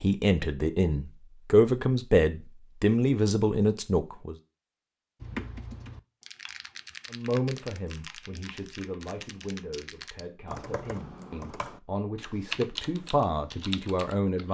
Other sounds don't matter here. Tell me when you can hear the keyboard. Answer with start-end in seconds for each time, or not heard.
5.2-14.4.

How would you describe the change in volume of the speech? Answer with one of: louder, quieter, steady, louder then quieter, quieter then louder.
quieter then louder.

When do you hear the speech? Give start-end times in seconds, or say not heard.
0.0-4.3, 7.1-14.4.